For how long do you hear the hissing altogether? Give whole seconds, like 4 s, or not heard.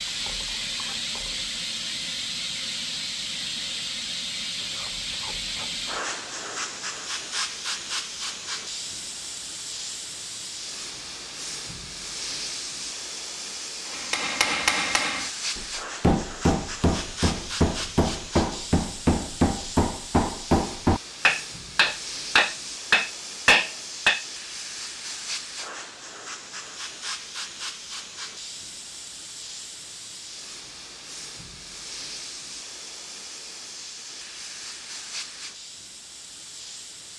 37 s.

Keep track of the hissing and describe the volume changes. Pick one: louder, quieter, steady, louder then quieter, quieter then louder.
quieter.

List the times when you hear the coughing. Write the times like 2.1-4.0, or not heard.
not heard.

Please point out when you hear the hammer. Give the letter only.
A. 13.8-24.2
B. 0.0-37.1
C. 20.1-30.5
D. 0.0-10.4
A.